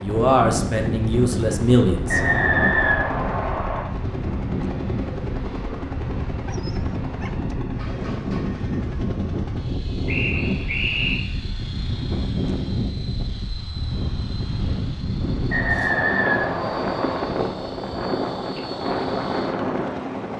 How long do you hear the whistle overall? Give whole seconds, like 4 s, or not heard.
5 s.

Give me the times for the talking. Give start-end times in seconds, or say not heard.
0.0-2.2.